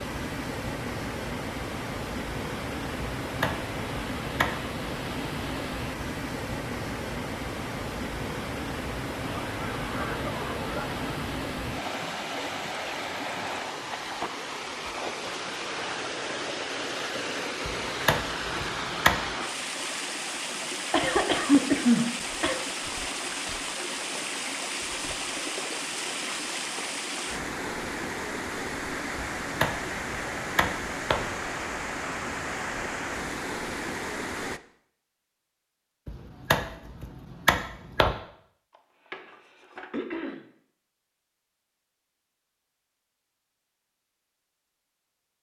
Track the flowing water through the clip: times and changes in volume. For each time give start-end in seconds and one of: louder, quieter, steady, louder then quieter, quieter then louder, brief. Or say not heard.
0.0-34.6 steady.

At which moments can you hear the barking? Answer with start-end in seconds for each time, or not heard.
not heard.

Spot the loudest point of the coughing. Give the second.
22 s.